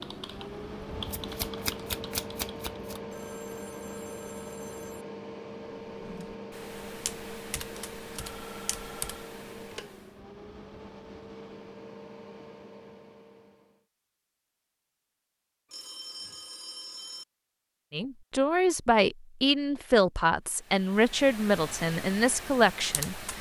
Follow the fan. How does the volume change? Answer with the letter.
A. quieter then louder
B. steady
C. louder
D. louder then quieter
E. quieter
E.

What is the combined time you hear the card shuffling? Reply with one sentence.
The card shuffling can be heard for 2 seconds in total.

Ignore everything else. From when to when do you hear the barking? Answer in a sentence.
You can't hear the barking here.